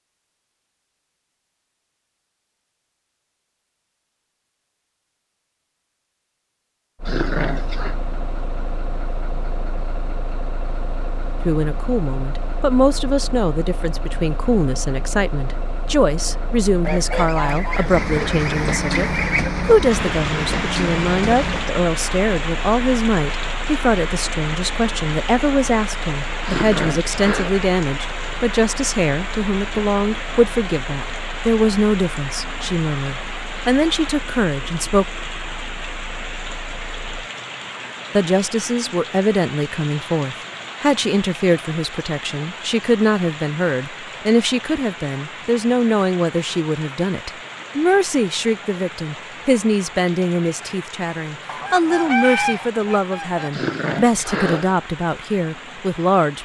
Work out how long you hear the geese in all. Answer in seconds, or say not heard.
5 s.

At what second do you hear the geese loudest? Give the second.
52 s.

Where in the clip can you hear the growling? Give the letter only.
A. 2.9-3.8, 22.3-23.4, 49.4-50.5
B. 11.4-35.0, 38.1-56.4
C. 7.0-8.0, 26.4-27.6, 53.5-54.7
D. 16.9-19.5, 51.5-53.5
C.